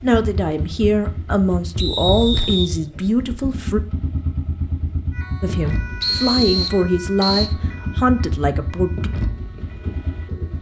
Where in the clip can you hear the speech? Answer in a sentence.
The speech can be heard from 0.0 to 3.8 s and from 5.4 to 9.1 s.